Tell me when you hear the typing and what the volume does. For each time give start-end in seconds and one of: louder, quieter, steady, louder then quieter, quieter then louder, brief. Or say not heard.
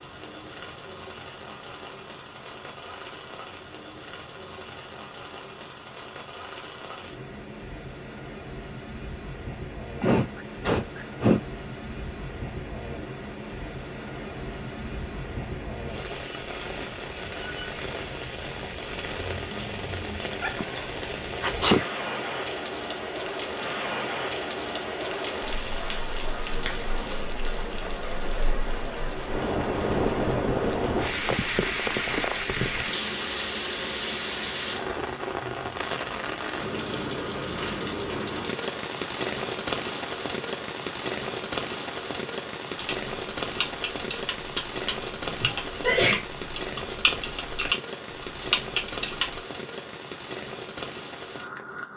42.8-49.4 louder.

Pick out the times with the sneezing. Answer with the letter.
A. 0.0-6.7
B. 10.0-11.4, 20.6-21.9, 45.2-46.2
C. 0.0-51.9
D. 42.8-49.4
B.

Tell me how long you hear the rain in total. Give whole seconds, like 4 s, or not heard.
52 s.